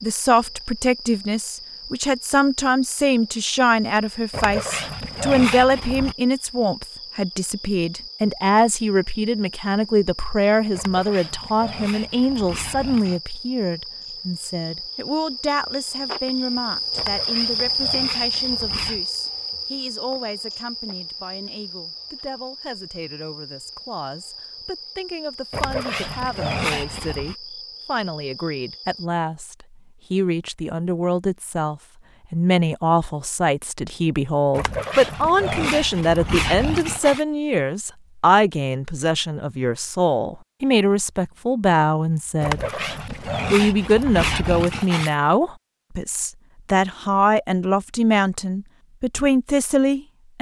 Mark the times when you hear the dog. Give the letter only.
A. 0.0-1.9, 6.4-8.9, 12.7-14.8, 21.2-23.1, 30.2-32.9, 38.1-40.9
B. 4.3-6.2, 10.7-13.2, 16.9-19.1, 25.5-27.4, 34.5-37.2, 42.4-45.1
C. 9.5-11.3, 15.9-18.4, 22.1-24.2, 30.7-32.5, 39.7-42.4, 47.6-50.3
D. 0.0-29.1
B.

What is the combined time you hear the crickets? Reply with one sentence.
The crickets can be heard for 29 seconds in total.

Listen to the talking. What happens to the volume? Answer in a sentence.
The loudness of the talking goes down, then up.